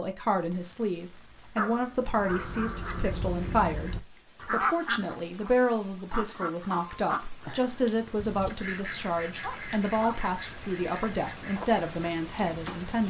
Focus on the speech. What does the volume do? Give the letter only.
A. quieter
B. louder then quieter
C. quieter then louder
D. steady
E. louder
D.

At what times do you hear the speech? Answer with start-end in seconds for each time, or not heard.
0.0-13.0.